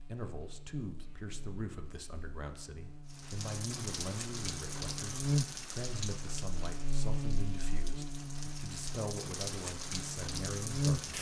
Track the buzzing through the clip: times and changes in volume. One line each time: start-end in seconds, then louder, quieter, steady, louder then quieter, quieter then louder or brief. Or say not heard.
0.0-11.1 louder then quieter.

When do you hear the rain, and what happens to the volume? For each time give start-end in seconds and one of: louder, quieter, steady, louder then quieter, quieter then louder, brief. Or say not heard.
3.0-11.1 quieter then louder.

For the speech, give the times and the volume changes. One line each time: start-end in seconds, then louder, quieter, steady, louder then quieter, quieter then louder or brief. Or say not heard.
0.1-11.1 steady.